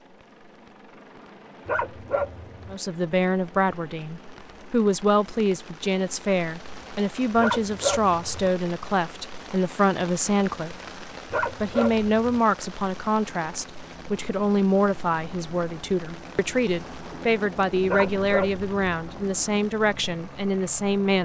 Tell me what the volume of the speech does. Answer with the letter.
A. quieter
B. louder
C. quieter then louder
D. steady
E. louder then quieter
D.